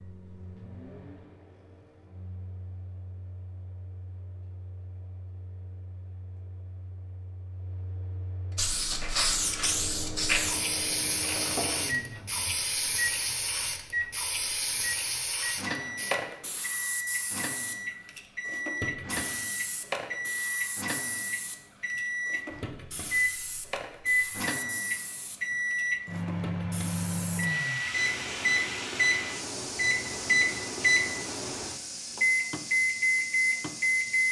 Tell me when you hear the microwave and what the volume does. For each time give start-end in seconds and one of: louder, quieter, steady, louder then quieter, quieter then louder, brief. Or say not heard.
0.0-34.2 louder.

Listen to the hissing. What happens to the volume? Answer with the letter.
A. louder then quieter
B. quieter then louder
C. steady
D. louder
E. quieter
E.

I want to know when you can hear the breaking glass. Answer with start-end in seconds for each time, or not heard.
11.2-11.9.